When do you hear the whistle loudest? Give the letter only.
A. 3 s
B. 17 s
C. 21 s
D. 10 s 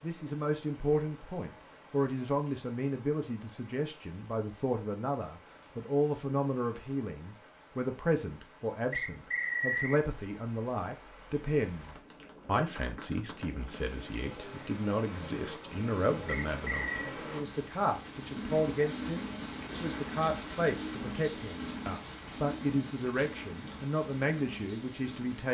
D.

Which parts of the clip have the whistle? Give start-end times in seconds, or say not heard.
8.9-10.0, 16.2-17.1.